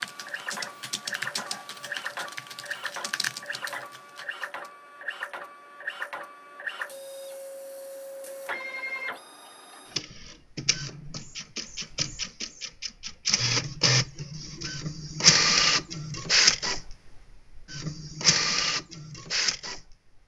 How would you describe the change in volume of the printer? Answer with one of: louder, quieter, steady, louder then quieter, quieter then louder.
louder.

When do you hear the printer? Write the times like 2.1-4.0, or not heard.
0.0-20.2.